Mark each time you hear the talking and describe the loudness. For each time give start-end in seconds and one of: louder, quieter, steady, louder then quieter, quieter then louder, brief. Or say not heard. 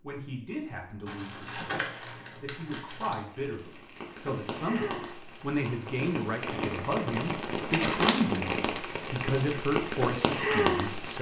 0.0-11.1 louder.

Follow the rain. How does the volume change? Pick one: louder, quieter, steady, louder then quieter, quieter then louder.
louder.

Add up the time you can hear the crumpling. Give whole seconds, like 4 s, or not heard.
3 s.